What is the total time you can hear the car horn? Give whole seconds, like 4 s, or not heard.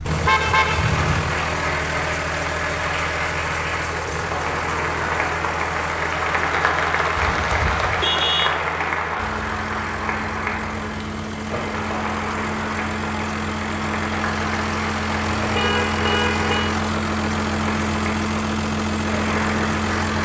4 s.